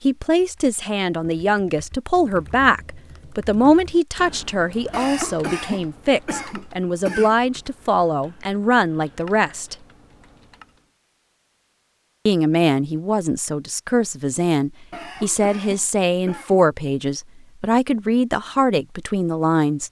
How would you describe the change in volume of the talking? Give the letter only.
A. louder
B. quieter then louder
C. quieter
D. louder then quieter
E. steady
E.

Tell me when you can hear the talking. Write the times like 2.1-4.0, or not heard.
0.0-9.8, 12.2-19.8.